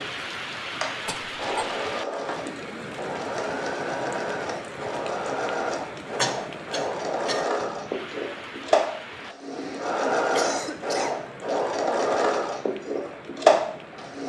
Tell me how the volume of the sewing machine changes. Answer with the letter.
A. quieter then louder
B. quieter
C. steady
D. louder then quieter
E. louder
E.